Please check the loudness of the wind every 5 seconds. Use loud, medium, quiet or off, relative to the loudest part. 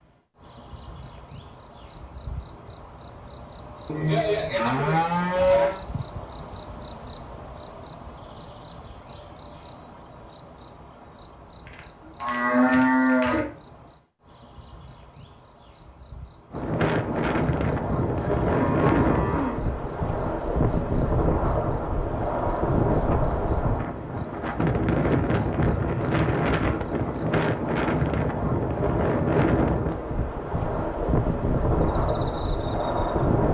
off, off, off, loud, loud, loud, loud.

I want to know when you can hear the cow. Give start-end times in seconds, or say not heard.
3.9-5.8, 12.2-13.4, 18.1-19.6, 25.6-26.9.